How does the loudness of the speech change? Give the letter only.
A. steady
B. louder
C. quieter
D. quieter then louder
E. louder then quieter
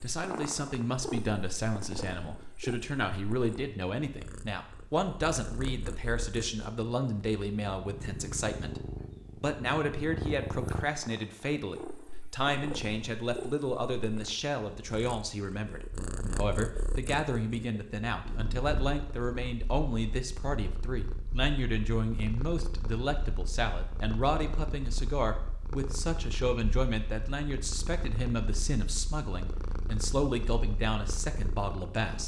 A.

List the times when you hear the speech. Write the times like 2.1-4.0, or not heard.
0.0-32.2.